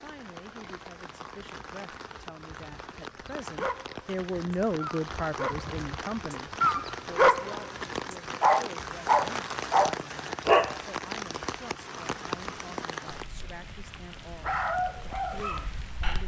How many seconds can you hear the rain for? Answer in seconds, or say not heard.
16 s.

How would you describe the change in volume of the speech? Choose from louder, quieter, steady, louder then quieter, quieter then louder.
louder then quieter.